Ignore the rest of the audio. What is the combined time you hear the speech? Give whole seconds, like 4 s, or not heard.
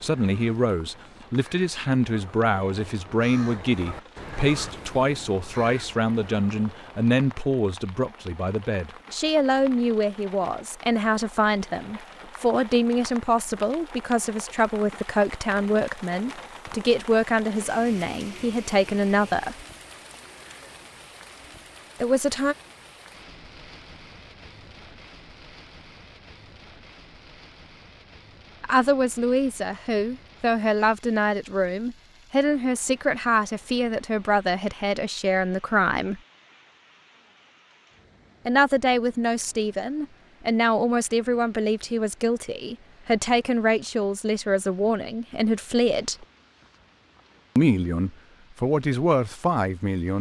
38 s.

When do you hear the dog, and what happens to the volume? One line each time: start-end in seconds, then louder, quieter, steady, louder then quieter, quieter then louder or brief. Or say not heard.
not heard.